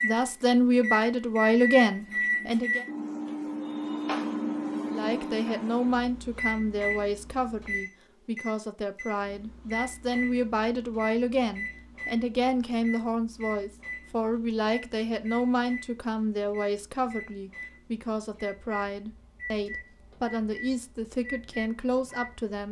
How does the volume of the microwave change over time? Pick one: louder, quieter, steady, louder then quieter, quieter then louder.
quieter.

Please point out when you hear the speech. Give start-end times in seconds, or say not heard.
0.0-2.9, 4.9-22.6.